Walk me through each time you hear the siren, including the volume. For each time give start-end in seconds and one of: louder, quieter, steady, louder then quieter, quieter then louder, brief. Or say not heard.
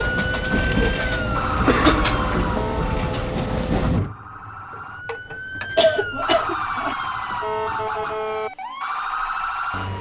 0.0-9.9 quieter then louder.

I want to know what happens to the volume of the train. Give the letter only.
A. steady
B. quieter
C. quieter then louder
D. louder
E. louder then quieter
B.